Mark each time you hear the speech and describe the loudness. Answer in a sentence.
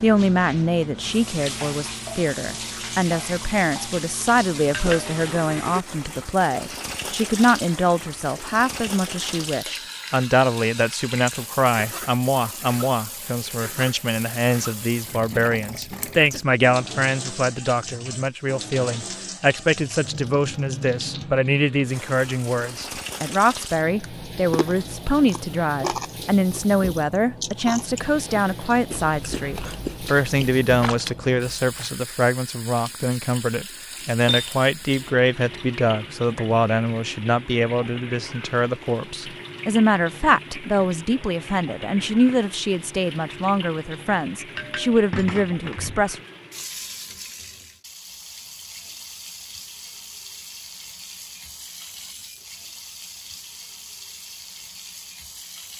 You can hear the speech from 0.0 to 46.2 s, at a steady volume.